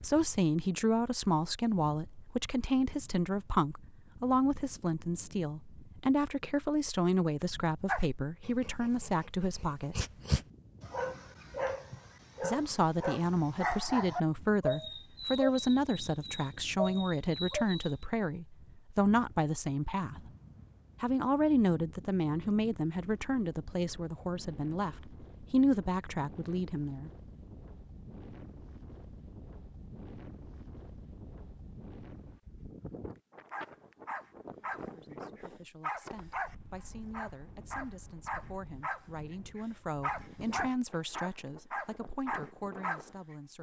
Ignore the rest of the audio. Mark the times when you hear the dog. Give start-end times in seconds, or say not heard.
7.8-18.1, 33.5-43.0.